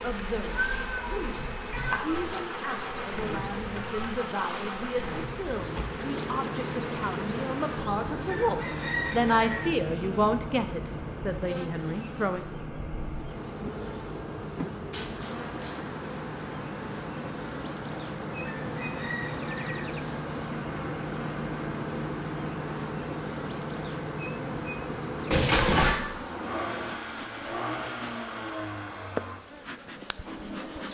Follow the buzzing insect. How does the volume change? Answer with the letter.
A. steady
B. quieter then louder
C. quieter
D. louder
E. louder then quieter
A.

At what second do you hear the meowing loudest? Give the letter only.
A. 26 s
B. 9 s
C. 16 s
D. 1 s
A.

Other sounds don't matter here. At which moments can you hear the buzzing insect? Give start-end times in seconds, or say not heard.
0.0-30.8.